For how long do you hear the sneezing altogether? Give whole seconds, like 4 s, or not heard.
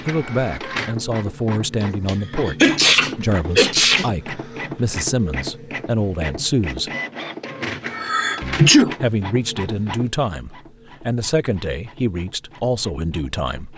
3 s.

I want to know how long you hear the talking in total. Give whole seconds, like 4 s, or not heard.
12 s.